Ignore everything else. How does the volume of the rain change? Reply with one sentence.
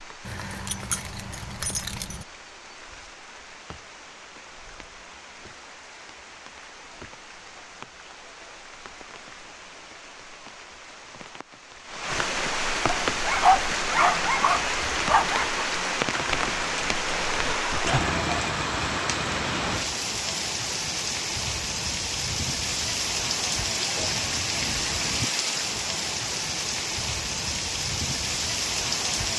The volume of the rain goes up.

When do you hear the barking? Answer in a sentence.
You can hear the barking from 13.1 to 15.7 s.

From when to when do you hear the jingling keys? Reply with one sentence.
The jingling keys can be heard from 0.2 to 2.2 s.